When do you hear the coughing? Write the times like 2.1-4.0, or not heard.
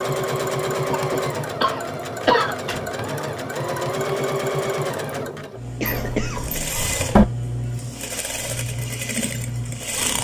0.9-2.6, 5.8-6.4.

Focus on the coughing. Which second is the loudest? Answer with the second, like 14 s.
2 s.